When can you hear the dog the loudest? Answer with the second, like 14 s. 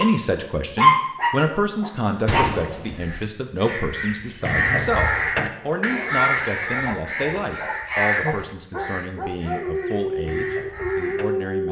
1 s.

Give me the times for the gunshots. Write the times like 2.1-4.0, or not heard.
2.2-3.2.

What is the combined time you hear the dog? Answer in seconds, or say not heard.
10 s.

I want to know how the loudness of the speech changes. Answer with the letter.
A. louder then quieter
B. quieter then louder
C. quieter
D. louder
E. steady
C.